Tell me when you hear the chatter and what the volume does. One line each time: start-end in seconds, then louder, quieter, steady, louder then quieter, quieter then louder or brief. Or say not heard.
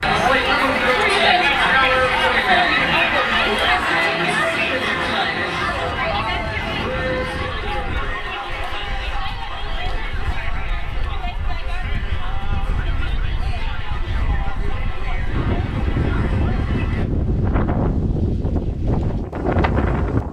0.0-17.1 quieter.